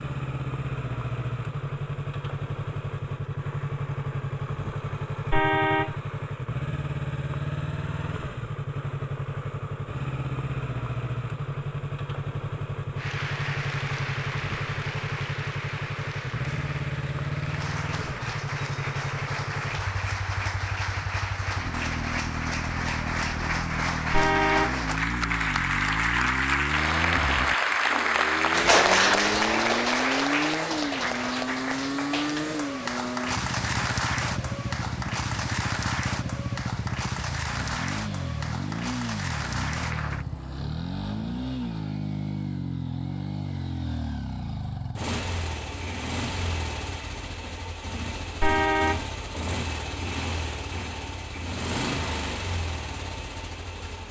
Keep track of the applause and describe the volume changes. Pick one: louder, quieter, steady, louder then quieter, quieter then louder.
louder then quieter.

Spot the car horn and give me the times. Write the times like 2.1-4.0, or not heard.
5.3-6.0, 24.1-24.8, 48.4-49.0.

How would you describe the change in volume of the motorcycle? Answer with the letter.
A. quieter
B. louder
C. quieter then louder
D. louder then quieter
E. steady
E.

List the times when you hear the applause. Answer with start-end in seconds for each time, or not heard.
12.9-40.2.